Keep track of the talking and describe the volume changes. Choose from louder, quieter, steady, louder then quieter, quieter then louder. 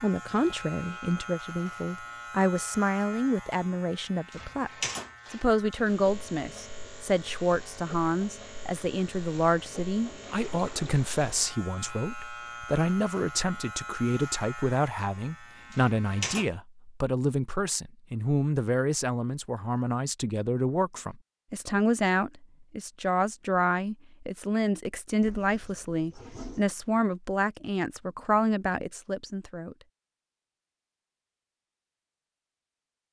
steady.